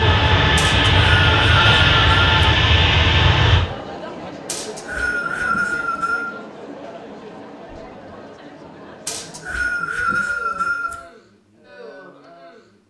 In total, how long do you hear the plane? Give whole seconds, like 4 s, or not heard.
4 s.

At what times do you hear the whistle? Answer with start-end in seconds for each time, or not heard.
0.6-2.4, 4.5-6.3, 9.1-10.9.